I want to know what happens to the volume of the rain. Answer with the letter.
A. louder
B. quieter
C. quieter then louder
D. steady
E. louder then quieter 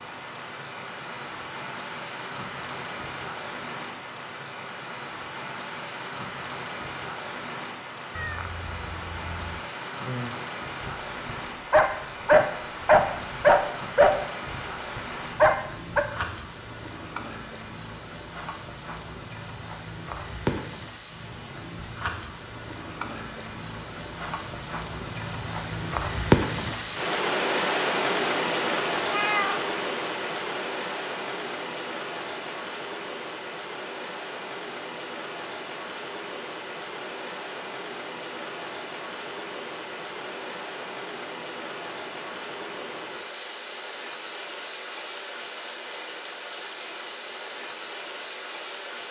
E.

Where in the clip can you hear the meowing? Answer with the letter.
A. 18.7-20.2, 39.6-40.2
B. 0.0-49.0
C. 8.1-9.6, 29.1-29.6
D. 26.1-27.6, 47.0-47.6
C.